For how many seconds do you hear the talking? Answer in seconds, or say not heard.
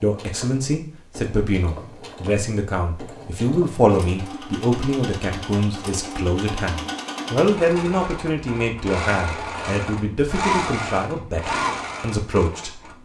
13 s.